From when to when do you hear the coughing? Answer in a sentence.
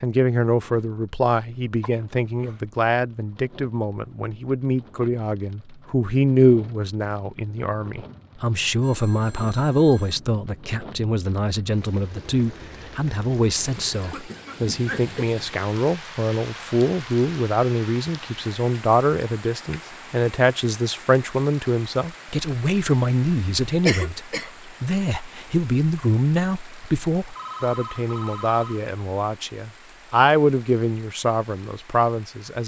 You can hear the coughing from 1.8 to 2.6 s, from 13.9 to 15.3 s and from 23.9 to 24.5 s.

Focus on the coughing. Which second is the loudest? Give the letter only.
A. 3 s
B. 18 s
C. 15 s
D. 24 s
D.